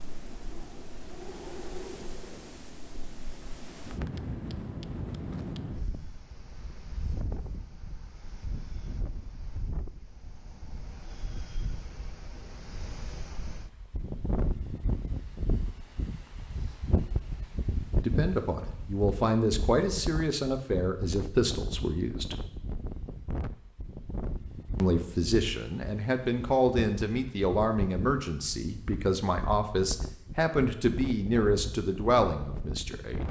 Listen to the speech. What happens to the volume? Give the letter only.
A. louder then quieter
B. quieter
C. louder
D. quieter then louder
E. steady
E.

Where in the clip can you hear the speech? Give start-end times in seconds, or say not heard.
18.1-22.4, 24.8-33.2.